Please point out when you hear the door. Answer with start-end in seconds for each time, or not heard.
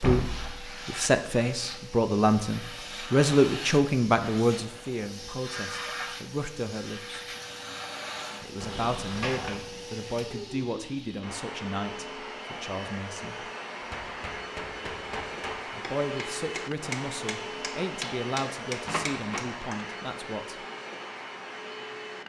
0.0-0.7, 8.6-9.7, 18.9-19.5.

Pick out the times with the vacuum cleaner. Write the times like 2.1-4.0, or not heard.
0.0-22.2.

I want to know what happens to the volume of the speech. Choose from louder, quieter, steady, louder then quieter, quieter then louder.
quieter.